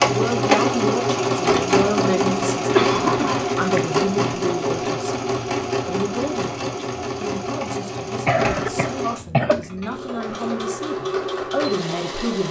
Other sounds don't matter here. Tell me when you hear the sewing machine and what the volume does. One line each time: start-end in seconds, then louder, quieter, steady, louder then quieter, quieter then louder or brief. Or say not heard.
0.0-12.4 quieter.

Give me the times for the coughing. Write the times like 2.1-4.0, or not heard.
2.7-3.8, 8.2-9.6.